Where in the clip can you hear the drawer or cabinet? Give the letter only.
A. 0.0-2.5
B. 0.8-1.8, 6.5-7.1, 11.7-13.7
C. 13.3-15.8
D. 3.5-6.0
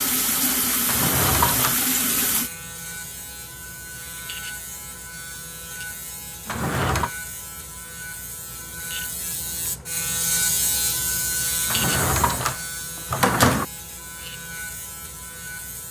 B.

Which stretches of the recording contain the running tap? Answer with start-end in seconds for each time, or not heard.
0.0-2.5.